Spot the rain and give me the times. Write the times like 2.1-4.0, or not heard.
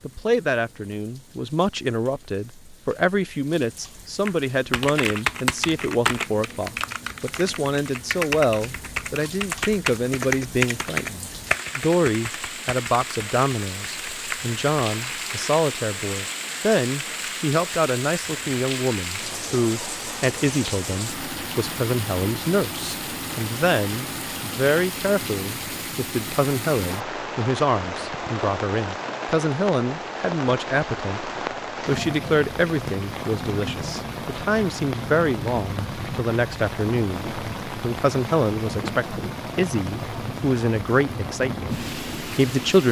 0.0-42.8.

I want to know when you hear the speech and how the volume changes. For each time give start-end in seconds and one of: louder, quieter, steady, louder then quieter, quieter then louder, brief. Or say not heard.
0.0-42.8 steady.